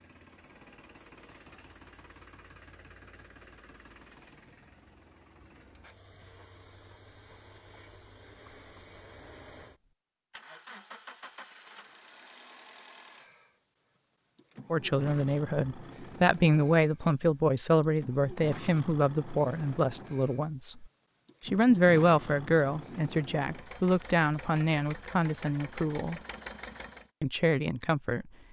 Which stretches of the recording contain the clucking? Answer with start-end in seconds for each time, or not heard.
not heard.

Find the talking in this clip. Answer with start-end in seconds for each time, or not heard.
14.7-20.9, 21.4-26.2, 27.2-28.2.